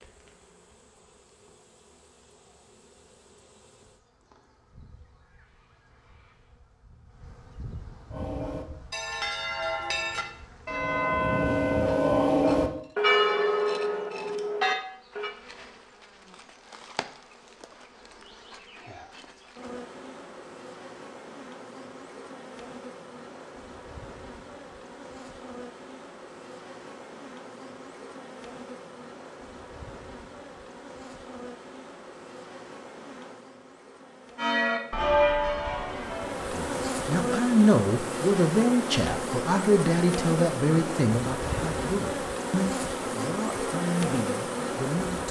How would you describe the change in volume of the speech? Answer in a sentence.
The volume of the speech goes down.